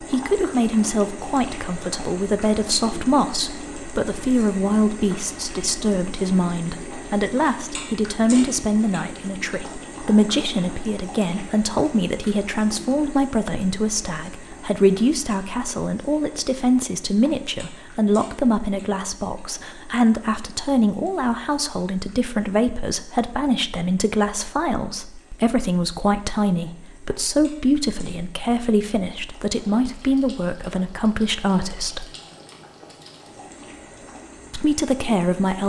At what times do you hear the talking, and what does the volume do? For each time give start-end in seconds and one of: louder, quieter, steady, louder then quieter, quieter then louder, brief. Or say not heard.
0.0-32.1 steady
34.5-35.6 brief.